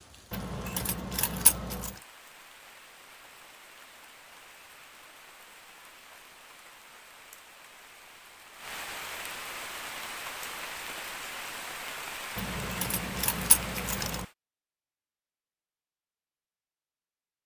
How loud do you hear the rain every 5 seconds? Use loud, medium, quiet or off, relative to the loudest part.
quiet, medium, loud, off.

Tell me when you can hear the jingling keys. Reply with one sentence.
The jingling keys can be heard from 0.3 to 1.9 s and from 12.3 to 14.2 s.